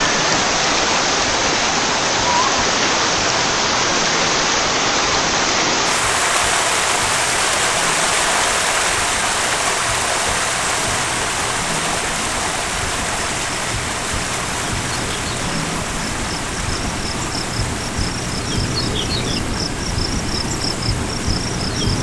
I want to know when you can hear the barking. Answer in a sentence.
The barking can't be heard in this clip.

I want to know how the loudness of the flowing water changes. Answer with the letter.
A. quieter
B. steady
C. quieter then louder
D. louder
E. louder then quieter
A.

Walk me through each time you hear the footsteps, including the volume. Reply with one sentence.
You can't hear the footsteps here.